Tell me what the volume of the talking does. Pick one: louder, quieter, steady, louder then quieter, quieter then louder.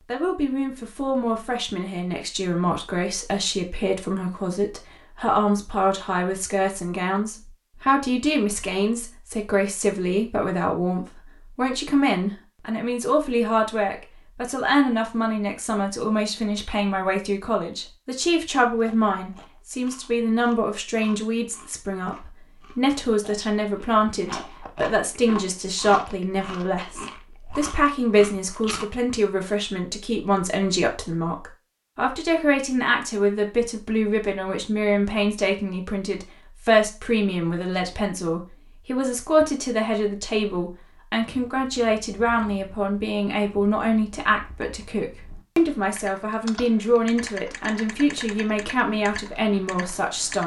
steady.